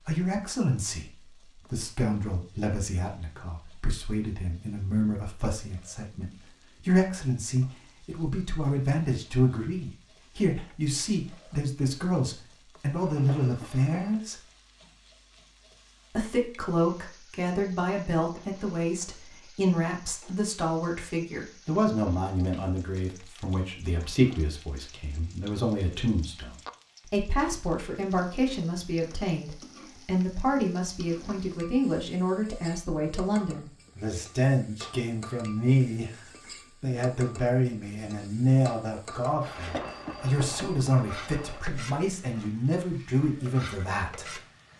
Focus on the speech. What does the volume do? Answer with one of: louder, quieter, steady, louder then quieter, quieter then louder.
steady.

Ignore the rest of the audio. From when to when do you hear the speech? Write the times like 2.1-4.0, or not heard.
0.1-14.4, 16.1-44.4.